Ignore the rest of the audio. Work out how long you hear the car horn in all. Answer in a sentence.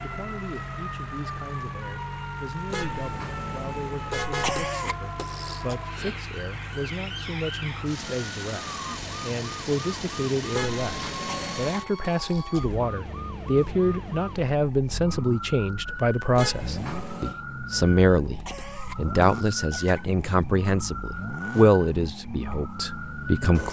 You can hear the car horn for 4 seconds altogether.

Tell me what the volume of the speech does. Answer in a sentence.
The loudness of the speech goes up.